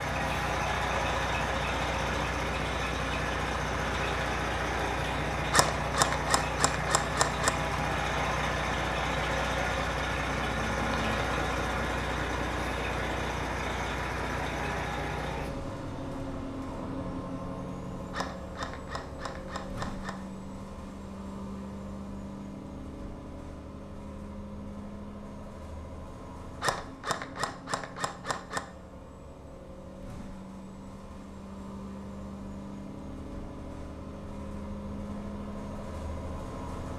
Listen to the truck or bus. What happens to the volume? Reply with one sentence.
The volume of the truck or bus goes down.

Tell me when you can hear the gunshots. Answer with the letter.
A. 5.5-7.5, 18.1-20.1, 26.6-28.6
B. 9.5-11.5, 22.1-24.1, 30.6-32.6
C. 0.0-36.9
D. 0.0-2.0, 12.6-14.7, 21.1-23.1
A.